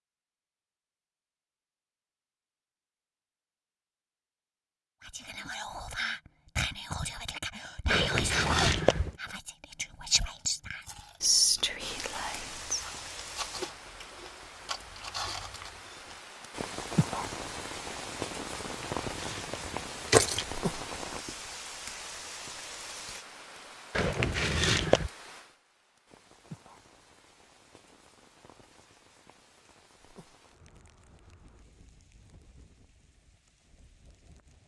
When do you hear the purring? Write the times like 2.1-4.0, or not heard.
not heard.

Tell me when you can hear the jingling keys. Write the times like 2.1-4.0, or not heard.
7.9-9.2, 18.6-20.4, 23.9-25.1.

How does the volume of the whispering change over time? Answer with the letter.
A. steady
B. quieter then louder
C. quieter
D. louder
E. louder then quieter
D.